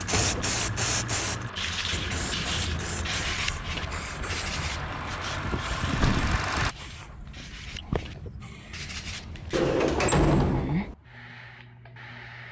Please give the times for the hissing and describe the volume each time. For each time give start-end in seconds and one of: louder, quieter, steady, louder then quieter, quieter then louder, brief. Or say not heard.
0.0-12.4 quieter then louder.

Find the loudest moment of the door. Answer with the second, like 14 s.
10 s.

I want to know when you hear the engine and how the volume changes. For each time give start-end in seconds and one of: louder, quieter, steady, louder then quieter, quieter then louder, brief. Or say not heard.
0.0-6.8 louder.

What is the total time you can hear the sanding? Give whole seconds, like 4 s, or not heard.
8 s.